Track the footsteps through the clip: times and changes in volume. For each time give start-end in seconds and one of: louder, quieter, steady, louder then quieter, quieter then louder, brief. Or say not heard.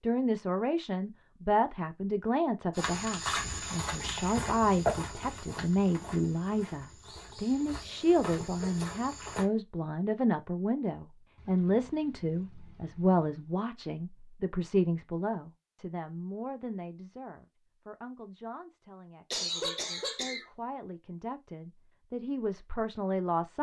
2.8-9.4 quieter then louder.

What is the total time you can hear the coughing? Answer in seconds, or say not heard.
2 s.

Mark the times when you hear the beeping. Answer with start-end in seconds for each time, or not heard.
not heard.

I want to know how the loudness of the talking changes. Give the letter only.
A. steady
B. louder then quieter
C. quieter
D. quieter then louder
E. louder
C.